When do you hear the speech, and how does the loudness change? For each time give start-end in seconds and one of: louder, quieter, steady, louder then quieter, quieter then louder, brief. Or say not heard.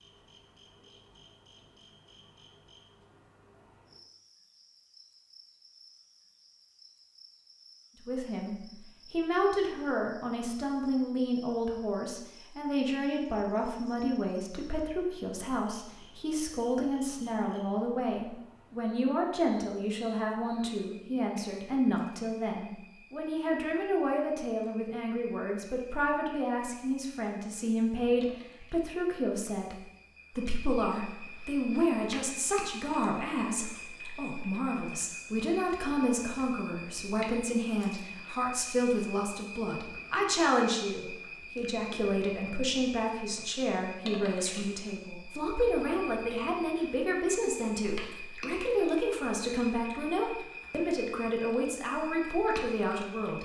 8.1-53.4 steady.